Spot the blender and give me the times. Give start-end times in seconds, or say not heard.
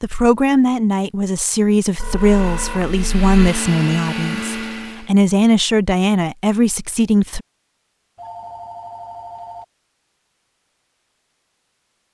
2.1-5.1.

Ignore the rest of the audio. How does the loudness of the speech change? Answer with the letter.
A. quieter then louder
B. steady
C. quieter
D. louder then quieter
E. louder
B.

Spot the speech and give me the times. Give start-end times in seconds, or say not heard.
0.0-7.4.